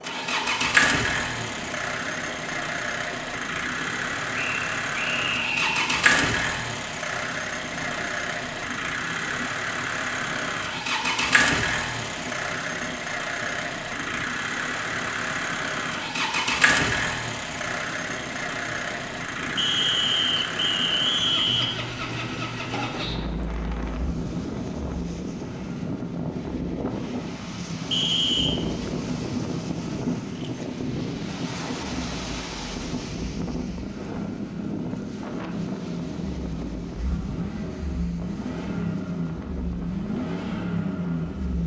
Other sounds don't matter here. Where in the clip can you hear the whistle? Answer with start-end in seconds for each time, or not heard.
4.3-5.8, 19.6-21.8, 27.9-28.6.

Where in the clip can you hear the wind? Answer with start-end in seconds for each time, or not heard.
0.0-41.6.